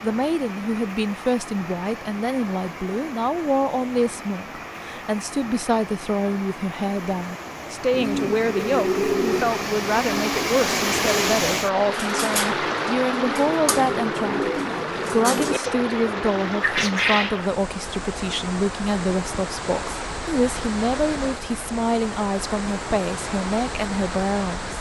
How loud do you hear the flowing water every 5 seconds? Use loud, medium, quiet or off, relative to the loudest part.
medium, medium, loud, medium, medium.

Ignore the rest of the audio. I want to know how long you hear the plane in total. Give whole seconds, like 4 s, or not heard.
not heard.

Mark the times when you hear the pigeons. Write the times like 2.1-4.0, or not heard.
7.9-17.4.